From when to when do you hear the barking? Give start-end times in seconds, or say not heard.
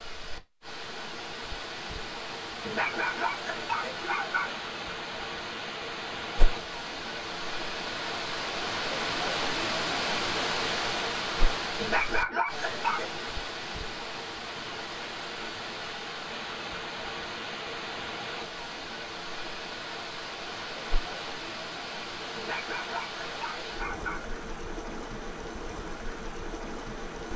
2.6-4.5, 11.8-13.2, 22.4-24.3.